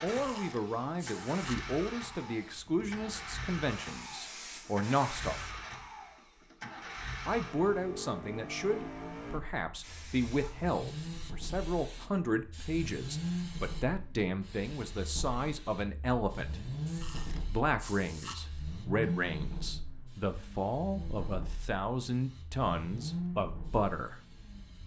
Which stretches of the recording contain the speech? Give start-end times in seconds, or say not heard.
0.0-5.5, 7.2-16.6, 17.4-24.1.